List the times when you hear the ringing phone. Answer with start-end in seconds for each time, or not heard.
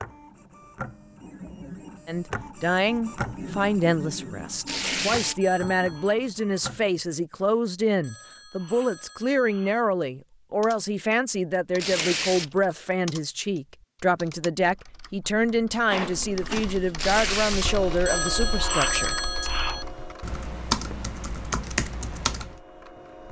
5.4-6.2, 8.0-9.8, 18.1-19.9.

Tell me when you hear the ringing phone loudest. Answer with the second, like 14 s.
19 s.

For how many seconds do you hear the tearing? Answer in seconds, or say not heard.
2 s.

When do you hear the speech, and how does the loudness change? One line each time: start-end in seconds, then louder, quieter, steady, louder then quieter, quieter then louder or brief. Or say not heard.
2.0-19.5 steady.